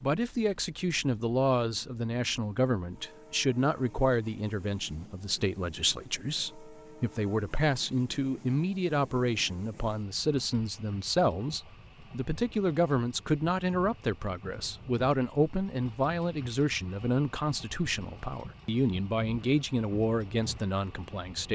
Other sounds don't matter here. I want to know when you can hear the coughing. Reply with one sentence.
The coughing can't be heard in this clip.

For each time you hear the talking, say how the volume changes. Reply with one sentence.
The talking can be heard from 0.0 to 21.5 s, at a steady volume.